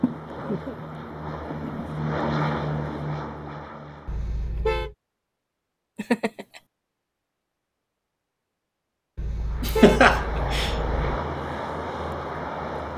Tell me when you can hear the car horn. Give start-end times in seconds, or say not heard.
4.0-5.0, 9.2-10.9.